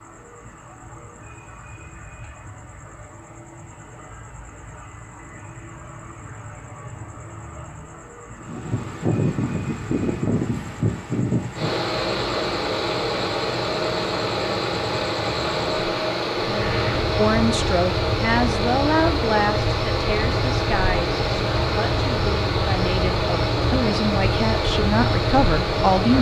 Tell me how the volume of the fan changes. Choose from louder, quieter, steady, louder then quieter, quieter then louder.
steady.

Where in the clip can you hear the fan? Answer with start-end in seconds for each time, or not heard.
8.3-26.1.